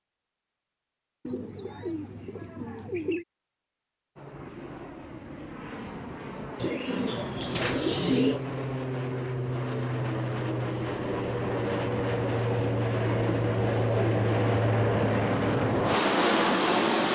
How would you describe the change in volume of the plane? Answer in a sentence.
The loudness of the plane goes up.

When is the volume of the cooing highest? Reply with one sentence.
The volume of the cooing peaks at 8 seconds.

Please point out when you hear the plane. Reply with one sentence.
You can hear the plane from 4.2 to 17.0 s.